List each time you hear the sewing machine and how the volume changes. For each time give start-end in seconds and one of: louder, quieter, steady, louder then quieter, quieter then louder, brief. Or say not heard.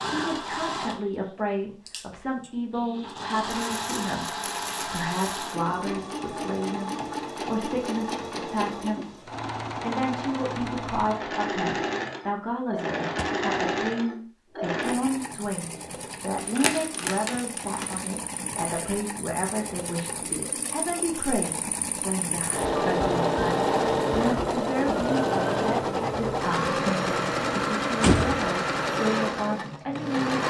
0.0-30.4 louder.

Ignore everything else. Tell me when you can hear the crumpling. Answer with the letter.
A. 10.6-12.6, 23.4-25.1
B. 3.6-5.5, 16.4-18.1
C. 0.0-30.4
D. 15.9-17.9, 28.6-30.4
B.